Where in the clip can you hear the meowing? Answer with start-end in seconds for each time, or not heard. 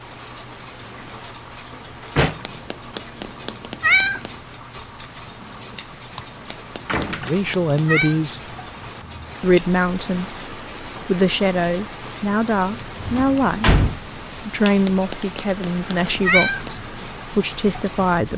2.5-4.3, 6.8-8.2, 14.8-16.7.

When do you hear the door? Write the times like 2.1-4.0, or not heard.
1.7-2.5, 6.8-7.5, 13.1-13.9.